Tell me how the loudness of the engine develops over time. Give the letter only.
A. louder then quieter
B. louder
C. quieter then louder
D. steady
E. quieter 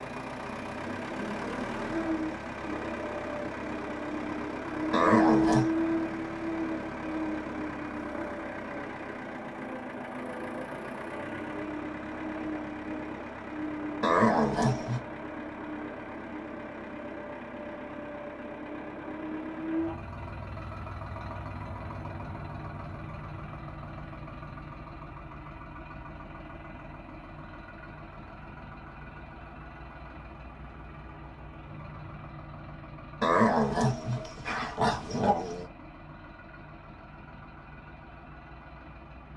E.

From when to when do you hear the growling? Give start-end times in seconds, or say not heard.
4.9-5.7, 14.0-15.0, 33.2-35.6.